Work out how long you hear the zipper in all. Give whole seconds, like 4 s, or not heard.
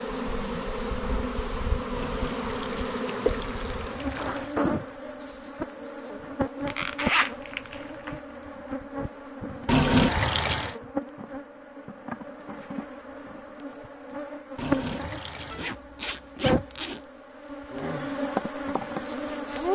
3 s.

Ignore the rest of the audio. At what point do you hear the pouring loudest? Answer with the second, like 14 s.
10 s.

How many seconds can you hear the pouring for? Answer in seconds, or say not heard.
5 s.